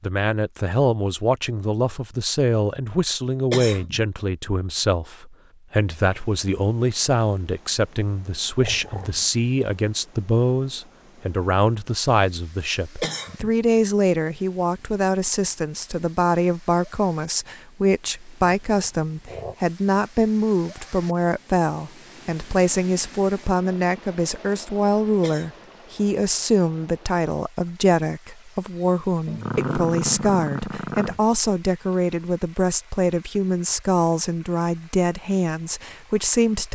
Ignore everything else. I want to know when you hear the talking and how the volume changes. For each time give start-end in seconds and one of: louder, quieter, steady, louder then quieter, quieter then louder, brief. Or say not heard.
0.0-36.6 steady.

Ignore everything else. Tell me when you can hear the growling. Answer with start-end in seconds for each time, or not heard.
8.6-9.2, 18.4-19.6, 29.2-31.2.